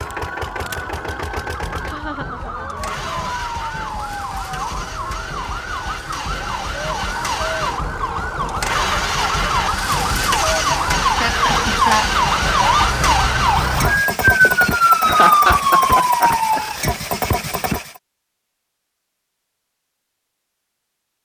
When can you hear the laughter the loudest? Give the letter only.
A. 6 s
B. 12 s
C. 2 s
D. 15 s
D.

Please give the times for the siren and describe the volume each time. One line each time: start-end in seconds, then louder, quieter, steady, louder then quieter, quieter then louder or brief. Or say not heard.
0.0-16.8 louder.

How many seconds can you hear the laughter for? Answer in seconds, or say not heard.
5 s.